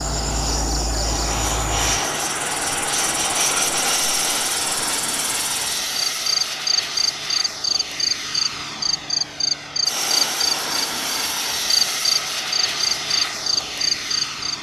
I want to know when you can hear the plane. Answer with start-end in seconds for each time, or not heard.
0.0-14.5.